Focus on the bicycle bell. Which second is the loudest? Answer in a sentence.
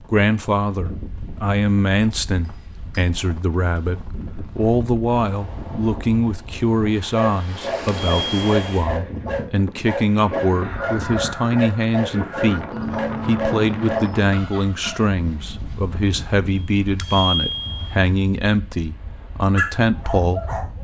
The loudest moment of the bicycle bell is at 17 seconds.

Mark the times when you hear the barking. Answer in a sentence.
You can hear the barking from 7.2 to 15.1 s and from 19.6 to 20.7 s.